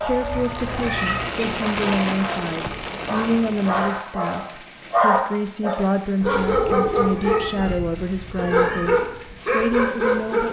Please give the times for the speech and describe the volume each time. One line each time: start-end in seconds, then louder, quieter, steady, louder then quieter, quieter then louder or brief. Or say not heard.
0.0-10.4 steady.